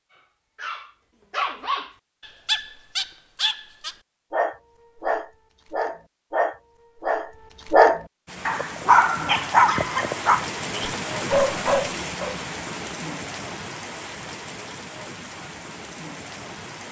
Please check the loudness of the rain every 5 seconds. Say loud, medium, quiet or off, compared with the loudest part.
off, loud, loud, medium.